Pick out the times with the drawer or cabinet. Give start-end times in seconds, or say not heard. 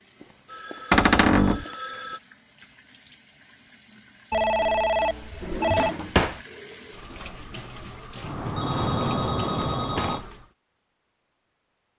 0.9-1.6, 5.4-6.4, 9.4-10.2.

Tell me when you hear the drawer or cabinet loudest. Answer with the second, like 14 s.
1 s.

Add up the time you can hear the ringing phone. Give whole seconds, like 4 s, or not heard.
6 s.